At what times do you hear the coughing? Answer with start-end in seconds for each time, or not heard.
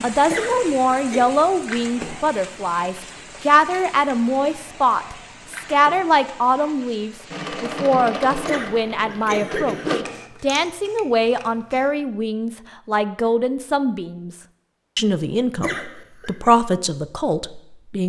0.2-1.2, 8.4-10.2, 15.6-16.5.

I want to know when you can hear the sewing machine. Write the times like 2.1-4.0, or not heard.
7.3-10.0.